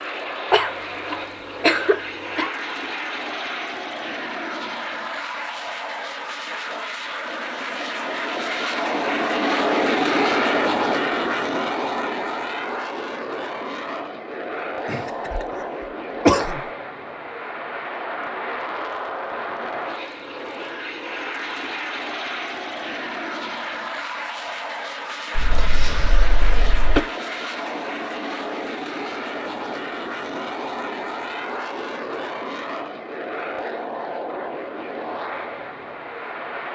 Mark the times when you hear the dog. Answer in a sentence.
You can't hear the dog here.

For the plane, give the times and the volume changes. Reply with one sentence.
The plane can be heard from 0.0 to 36.7 s, getting louder then quieter.